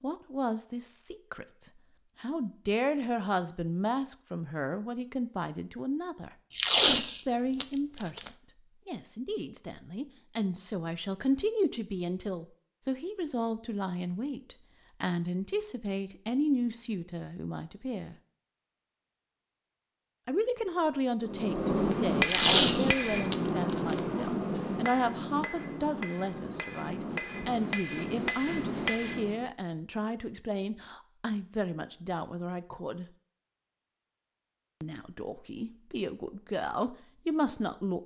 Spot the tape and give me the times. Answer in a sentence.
The tape can be heard from 6.5 to 8.3 s and from 22.2 to 24.0 s.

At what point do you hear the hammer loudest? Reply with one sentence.
The loudest moment of the hammer is at 22 seconds.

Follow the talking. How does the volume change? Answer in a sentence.
The volume of the talking stays about the same.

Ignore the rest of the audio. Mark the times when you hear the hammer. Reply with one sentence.
You can hear the hammer from 21.2 to 29.4 s.